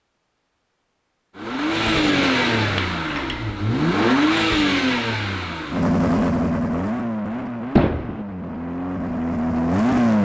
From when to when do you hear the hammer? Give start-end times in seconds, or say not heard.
1.9-3.6, 7.8-8.2.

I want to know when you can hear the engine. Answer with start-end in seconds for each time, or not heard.
1.4-10.2.